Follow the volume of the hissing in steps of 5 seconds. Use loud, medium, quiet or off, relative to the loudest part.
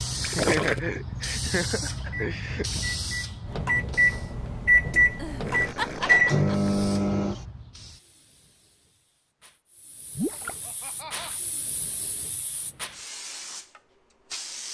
loud, quiet, medium.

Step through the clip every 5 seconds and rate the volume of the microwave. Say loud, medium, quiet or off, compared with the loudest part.
loud, loud, off.